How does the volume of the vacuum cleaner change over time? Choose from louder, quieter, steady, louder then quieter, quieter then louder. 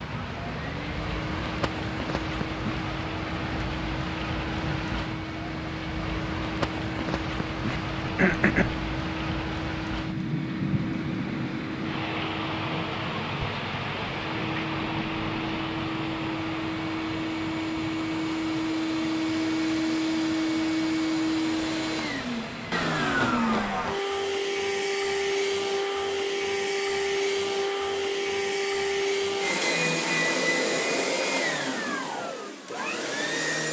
louder.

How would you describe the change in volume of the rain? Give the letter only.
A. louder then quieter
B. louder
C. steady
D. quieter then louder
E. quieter
E.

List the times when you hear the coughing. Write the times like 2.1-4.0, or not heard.
7.7-8.8.